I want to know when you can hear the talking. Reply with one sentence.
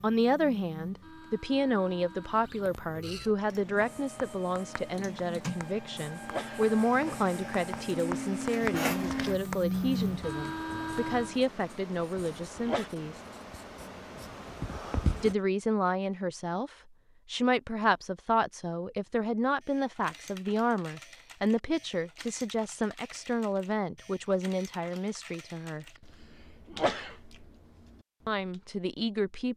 You can hear the talking from 0.0 to 13.2 s, from 15.2 to 25.9 s and from 28.2 to 29.5 s.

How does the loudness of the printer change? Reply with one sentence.
The loudness of the printer goes up.